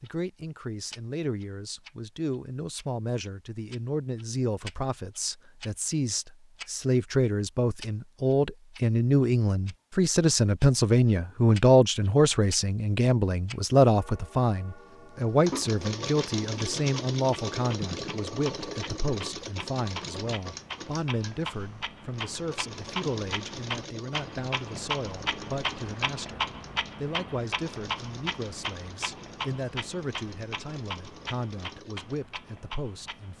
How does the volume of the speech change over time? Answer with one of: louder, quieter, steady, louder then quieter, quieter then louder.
louder then quieter.